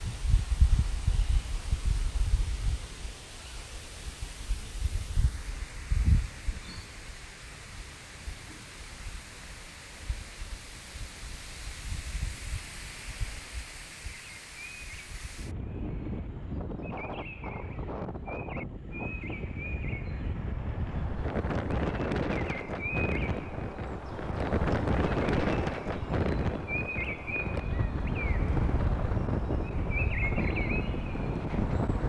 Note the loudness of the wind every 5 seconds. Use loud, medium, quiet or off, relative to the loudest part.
medium, medium, quiet, medium, loud, loud, loud.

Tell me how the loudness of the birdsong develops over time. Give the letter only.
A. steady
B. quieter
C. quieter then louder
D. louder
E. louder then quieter
D.